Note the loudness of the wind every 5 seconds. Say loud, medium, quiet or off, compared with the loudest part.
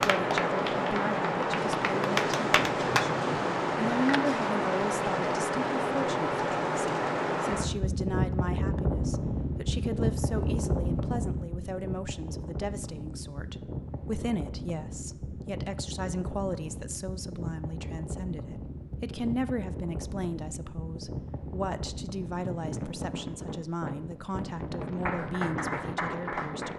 loud, loud, medium, medium, medium, medium.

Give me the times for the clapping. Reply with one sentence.
You can hear the clapping from 0.0 to 3.0 s and from 25.1 to 26.7 s.